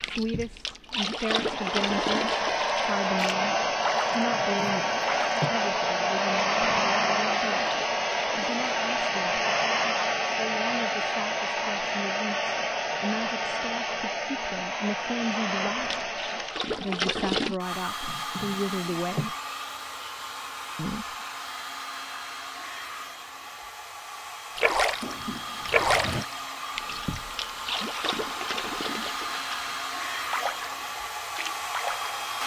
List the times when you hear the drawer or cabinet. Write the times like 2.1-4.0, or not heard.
4.2-5.6, 18.0-19.3, 24.9-26.2.